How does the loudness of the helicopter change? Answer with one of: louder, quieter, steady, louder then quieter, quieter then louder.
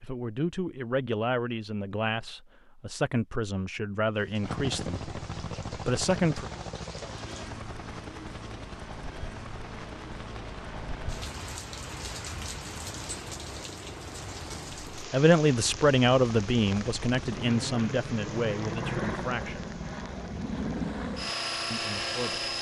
quieter then louder.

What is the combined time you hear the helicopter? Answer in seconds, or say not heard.
18 s.